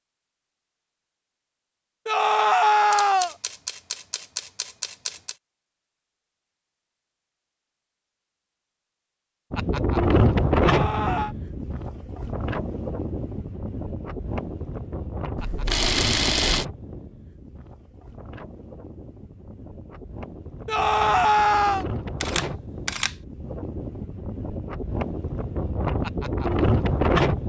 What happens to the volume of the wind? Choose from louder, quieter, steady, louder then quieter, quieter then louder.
quieter then louder.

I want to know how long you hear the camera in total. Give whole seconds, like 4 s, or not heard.
5 s.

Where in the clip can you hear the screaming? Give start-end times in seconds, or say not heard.
2.0-3.4, 10.6-11.3, 20.6-21.9.